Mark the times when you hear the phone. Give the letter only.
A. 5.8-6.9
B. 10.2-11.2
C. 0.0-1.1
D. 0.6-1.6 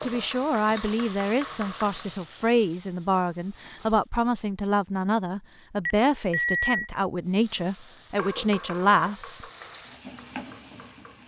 A.